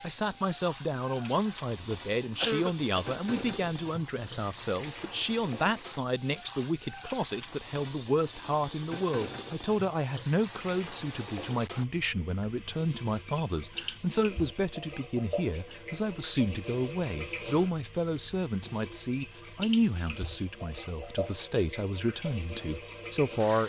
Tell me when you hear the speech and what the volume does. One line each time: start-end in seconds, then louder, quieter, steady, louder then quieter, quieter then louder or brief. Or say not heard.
0.0-23.6 steady.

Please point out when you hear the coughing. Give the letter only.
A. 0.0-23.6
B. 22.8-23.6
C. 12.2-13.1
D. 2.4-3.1
D.